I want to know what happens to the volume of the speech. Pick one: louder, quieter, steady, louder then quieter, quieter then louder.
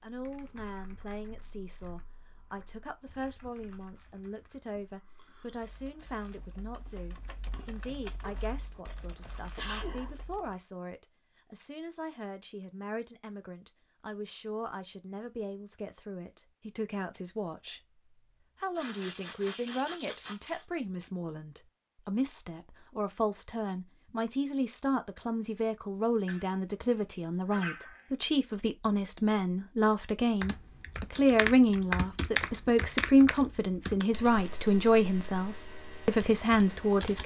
louder.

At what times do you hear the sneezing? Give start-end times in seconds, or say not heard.
8.2-10.2, 18.8-20.6, 26.2-28.1.